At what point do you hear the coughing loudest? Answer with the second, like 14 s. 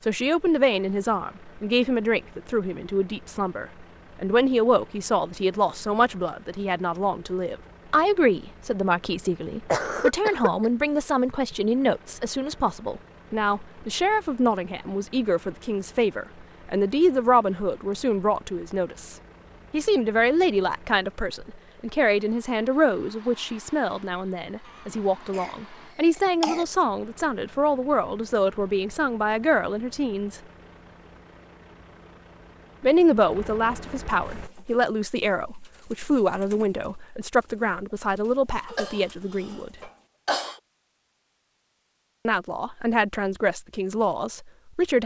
10 s.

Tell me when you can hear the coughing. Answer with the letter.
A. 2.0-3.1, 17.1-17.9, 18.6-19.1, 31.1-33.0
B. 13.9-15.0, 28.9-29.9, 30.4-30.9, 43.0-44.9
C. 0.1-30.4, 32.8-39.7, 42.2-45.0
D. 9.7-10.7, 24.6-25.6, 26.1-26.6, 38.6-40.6
D.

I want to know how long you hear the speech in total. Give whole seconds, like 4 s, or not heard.
40 s.